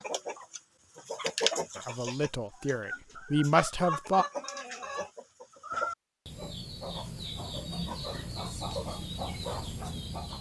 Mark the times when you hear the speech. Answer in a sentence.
You can hear the speech from 1.8 to 4.2 s.